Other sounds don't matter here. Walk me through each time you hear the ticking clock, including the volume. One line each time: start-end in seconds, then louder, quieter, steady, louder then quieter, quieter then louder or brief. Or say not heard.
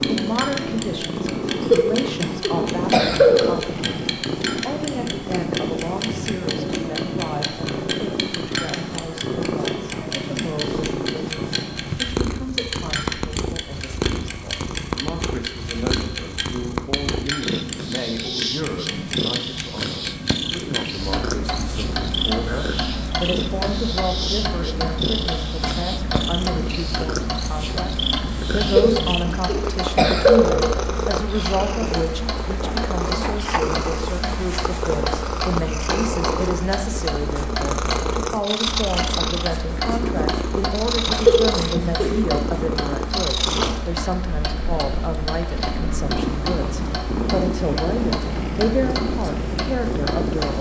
0.0-50.5 steady.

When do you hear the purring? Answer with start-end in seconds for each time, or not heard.
0.0-50.5.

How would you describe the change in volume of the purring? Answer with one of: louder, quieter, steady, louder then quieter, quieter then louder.
steady.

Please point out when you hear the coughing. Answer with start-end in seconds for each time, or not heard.
1.7-3.5, 28.8-30.6, 41.1-42.1.